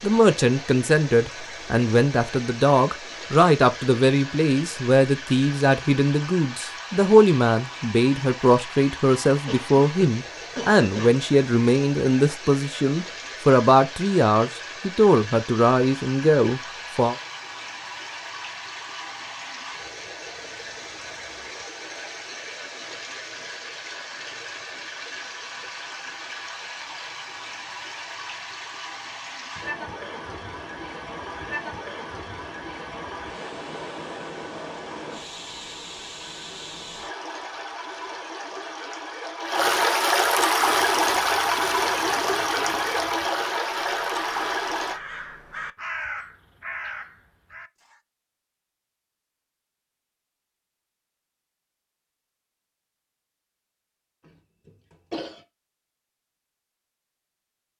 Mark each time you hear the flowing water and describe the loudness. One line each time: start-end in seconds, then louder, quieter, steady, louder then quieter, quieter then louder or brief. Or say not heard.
0.0-45.0 louder.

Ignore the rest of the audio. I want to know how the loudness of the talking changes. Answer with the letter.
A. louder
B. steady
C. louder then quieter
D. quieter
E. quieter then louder
B.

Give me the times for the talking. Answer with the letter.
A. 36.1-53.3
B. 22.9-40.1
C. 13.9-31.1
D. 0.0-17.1
D.